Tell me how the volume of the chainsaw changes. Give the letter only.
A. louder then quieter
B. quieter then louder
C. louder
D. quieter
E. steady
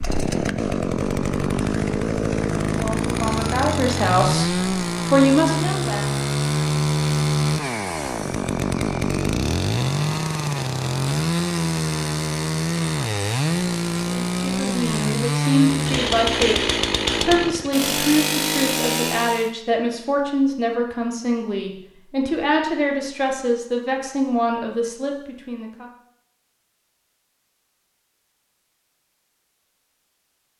E.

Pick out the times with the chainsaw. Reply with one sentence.
The chainsaw can be heard from 0.0 to 19.5 s.